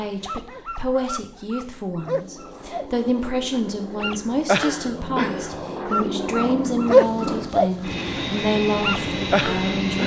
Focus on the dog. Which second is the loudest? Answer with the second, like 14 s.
7 s.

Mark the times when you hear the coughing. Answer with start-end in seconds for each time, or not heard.
not heard.